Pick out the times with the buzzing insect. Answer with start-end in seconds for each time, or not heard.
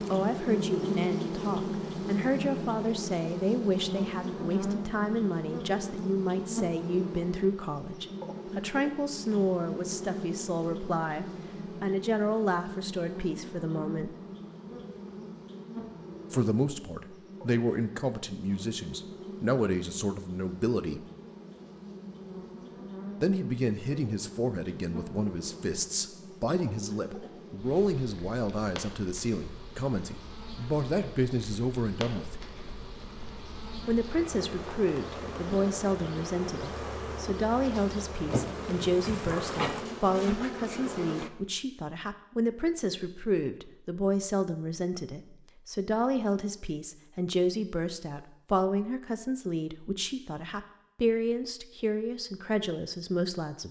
0.0-41.3.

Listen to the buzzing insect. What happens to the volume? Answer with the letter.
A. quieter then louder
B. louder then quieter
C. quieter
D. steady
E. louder
A.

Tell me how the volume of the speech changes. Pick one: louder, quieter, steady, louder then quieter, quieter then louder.
steady.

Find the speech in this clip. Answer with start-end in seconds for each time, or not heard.
0.1-14.2, 16.3-21.1, 23.2-32.5, 33.9-53.6.